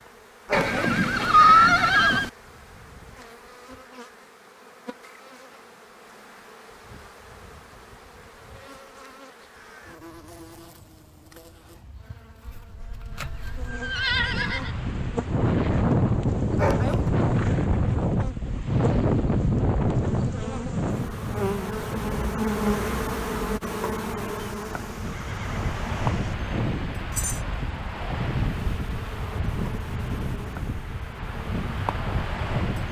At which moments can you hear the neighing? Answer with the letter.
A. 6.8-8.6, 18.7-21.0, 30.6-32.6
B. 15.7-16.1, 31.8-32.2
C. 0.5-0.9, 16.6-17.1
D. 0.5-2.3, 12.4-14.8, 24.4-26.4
D.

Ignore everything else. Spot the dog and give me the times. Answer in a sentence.
You can hear the dog from 0.5 to 0.9 s and from 16.6 to 17.1 s.